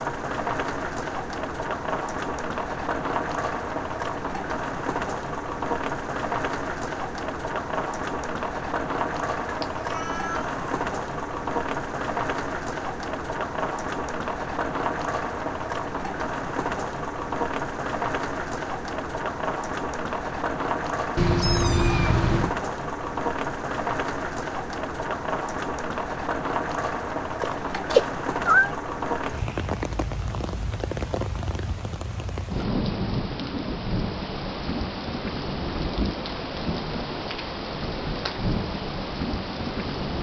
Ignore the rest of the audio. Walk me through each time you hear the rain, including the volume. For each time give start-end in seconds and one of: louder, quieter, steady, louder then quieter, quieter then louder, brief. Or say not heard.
0.0-40.1 steady.